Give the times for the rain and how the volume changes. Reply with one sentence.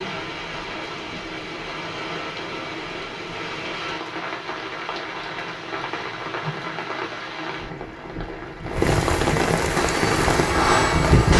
You can hear the rain from 0.0 to 11.3 s, getting louder.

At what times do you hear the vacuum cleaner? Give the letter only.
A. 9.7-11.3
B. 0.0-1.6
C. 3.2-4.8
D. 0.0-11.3
A.